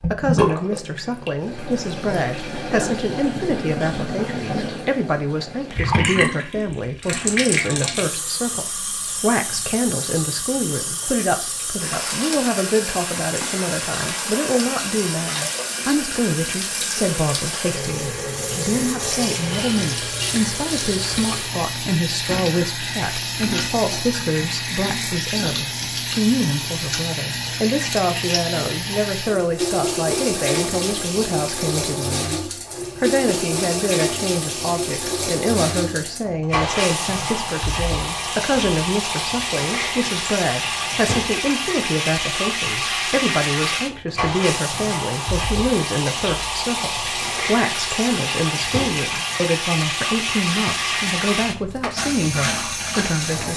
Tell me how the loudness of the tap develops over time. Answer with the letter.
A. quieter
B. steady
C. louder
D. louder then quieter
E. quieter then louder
B.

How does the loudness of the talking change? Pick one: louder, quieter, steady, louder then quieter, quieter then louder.
steady.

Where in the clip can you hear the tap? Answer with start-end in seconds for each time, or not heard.
0.0-53.5.